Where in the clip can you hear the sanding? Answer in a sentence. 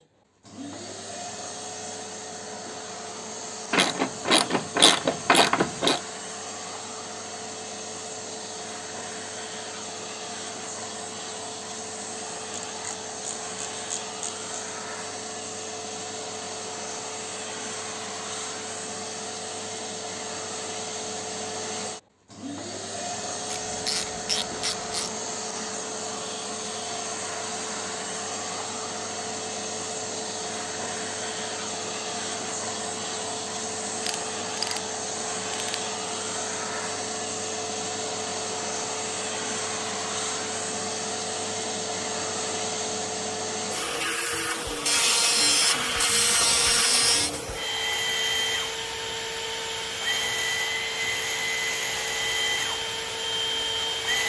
The sanding can't be heard in this clip.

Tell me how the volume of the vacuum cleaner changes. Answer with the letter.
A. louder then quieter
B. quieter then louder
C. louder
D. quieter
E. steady
C.